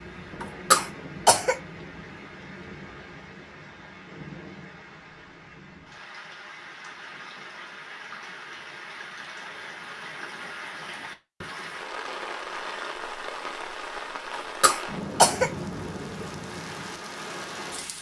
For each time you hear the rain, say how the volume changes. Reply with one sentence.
The rain can be heard from 0.0 to 17.9 s, getting louder.